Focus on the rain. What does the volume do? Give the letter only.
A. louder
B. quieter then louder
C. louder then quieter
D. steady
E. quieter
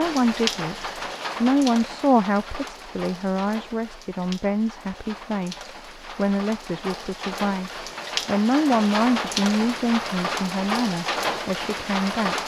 B.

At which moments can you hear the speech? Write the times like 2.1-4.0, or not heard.
0.0-12.3.